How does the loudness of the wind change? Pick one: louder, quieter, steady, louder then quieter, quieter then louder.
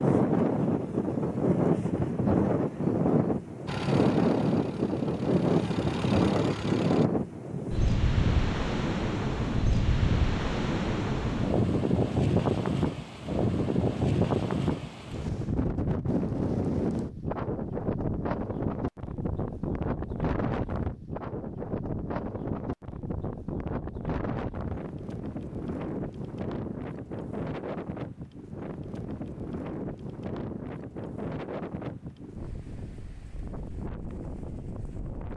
quieter.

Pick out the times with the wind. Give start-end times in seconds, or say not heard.
0.0-35.3.